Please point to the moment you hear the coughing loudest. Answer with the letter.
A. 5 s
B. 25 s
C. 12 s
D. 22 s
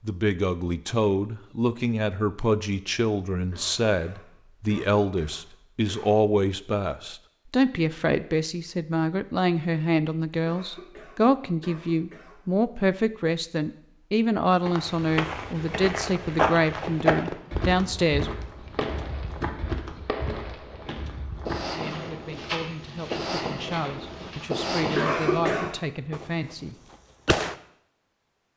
B.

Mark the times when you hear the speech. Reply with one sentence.
The speech can be heard from 0.0 to 18.3 s and from 21.7 to 26.8 s.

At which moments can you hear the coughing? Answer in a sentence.
You can hear the coughing from 3.5 to 6.2 s, from 10.4 to 12.4 s and from 24.9 to 25.8 s.